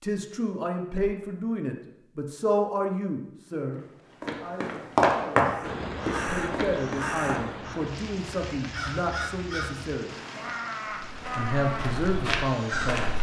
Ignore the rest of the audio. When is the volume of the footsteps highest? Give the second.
5 s.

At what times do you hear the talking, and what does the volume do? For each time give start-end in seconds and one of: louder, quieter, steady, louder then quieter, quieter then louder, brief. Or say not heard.
0.0-10.1 quieter then louder
11.3-13.1 brief.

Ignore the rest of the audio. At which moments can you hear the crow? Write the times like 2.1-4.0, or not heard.
5.5-13.1.